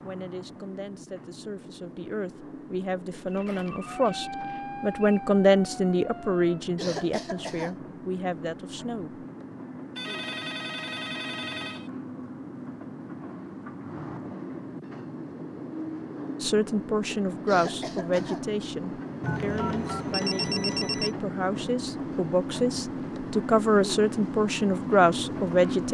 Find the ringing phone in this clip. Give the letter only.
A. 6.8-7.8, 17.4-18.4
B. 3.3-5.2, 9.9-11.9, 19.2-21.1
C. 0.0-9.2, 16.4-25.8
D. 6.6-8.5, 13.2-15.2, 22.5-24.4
B.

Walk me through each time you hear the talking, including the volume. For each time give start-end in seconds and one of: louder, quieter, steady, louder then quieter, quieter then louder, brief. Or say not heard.
0.0-9.2 louder then quieter
16.4-25.8 quieter then louder.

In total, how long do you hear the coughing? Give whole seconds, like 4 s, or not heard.
2 s.